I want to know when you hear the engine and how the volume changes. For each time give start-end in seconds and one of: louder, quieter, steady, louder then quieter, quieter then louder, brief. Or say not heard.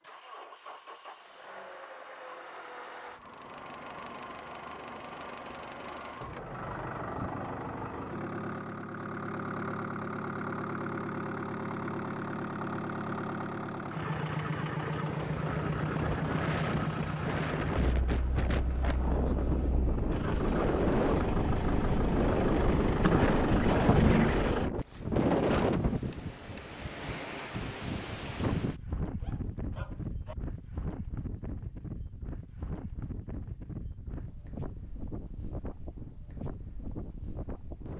0.0-24.7 louder.